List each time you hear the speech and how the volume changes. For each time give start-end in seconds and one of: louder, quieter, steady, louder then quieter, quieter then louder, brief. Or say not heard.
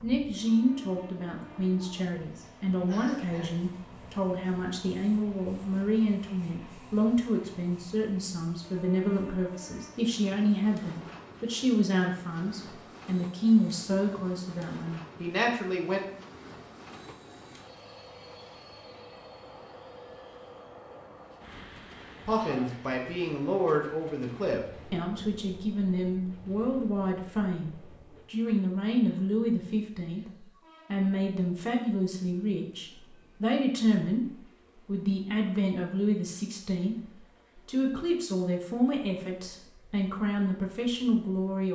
0.0-16.0 steady
22.2-41.7 steady.